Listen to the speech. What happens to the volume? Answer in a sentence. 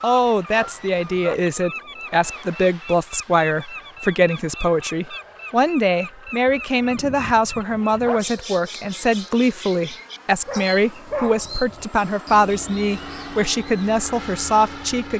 The volume of the speech stays about the same.